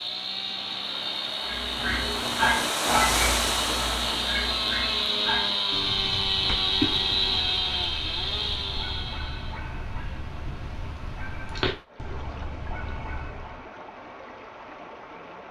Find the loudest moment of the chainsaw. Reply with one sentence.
The volume of the chainsaw peaks at 7 seconds.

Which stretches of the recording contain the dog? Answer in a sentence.
You can hear the dog from 1.4 to 13.6 s.